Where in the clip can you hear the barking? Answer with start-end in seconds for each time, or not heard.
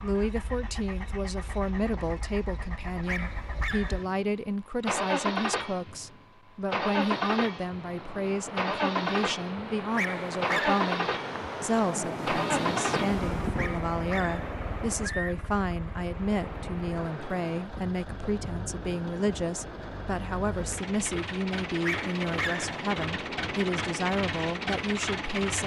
3.0-4.0, 9.9-10.8, 13.6-14.6, 21.8-22.8.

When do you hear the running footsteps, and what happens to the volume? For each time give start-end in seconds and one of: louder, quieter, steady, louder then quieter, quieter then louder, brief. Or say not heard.
not heard.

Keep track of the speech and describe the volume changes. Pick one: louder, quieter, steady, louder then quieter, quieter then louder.
steady.